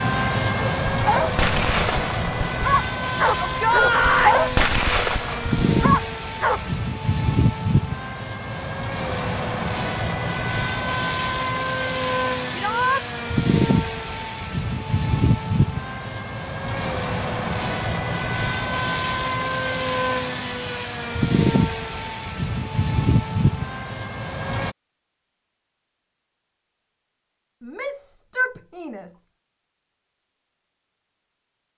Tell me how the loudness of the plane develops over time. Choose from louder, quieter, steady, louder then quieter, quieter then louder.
steady.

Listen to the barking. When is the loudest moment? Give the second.
4 s.